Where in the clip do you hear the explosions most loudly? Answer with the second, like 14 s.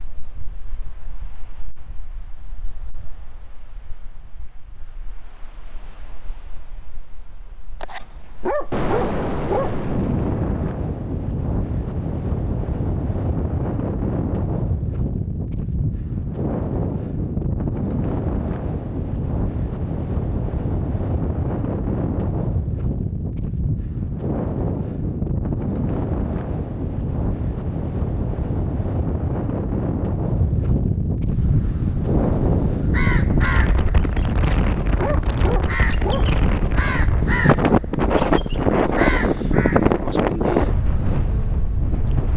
9 s.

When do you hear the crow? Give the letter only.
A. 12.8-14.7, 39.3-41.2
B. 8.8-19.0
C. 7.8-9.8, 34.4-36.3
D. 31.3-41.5
D.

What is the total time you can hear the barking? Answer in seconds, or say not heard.
4 s.